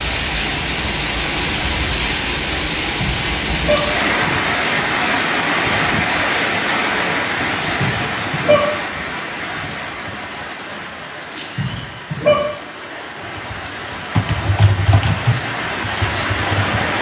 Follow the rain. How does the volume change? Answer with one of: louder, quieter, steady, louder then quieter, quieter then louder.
quieter then louder.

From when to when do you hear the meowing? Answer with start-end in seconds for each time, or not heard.
3.0-3.8, 7.5-8.6, 11.3-12.3.